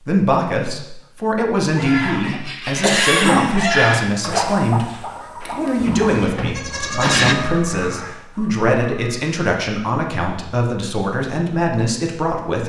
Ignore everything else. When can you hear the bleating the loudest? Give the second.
7 s.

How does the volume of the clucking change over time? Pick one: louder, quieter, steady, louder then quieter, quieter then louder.
quieter.